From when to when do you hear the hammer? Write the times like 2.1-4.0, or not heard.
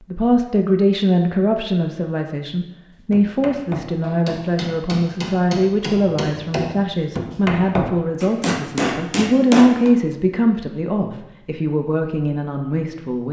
3.1-9.9.